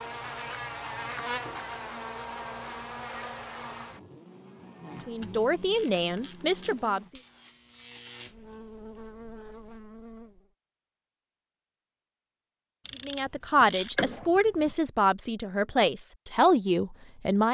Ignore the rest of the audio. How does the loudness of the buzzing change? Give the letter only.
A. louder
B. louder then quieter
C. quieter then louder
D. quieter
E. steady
D.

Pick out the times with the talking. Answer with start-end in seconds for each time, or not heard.
5.0-7.0, 13.1-17.4.